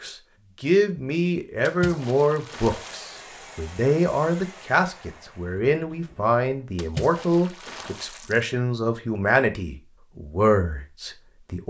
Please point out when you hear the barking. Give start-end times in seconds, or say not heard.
not heard.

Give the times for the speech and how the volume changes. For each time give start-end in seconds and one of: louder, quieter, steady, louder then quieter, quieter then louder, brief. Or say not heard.
0.0-11.6 steady.